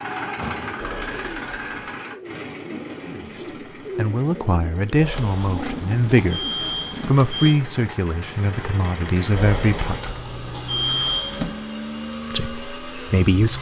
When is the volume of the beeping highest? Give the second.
11 s.